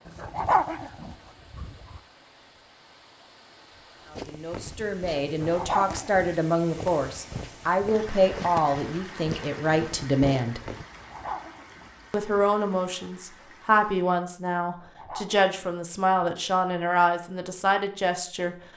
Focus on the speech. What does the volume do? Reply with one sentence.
The volume of the speech stays about the same.